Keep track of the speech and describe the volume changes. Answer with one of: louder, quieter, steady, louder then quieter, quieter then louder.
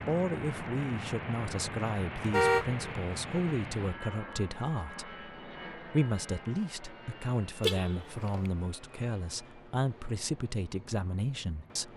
steady.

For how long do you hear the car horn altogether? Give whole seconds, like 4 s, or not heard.
2 s.